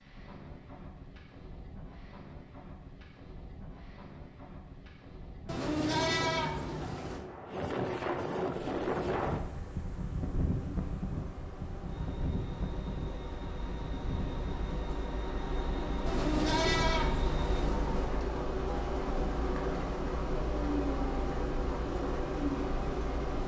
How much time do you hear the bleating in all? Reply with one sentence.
You can hear the bleating for 4 seconds altogether.